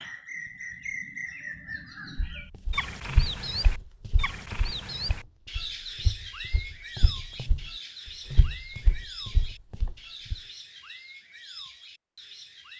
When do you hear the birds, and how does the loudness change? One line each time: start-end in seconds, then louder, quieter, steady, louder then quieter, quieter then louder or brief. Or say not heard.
0.0-12.7 quieter.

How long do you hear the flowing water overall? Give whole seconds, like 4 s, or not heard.
not heard.